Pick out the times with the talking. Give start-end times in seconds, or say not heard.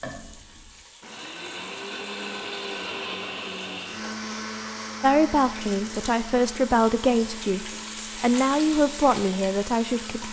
5.0-10.2.